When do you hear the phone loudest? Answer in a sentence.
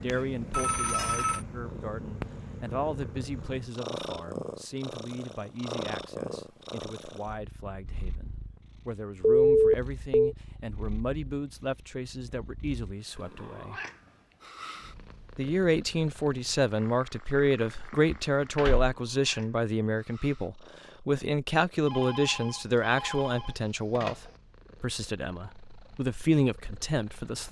The loudest moment of the phone is at 10 seconds.